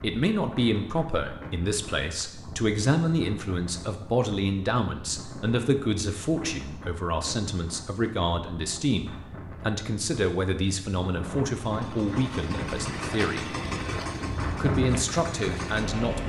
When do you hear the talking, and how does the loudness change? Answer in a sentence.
You can hear the talking from 0.0 to 13.5 s, at a steady volume; and briefly from 14.6 to 16.2 s.